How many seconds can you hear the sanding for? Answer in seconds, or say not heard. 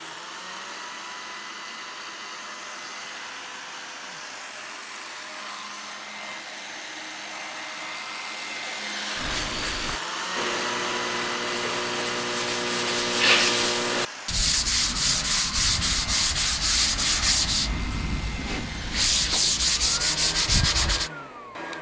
12 s.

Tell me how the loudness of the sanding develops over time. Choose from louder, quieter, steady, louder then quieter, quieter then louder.
louder.